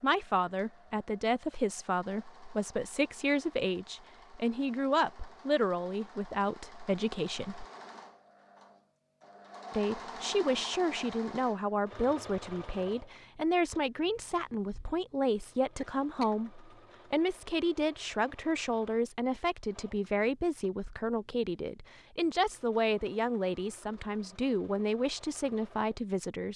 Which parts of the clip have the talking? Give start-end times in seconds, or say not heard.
0.0-7.7, 9.7-26.5.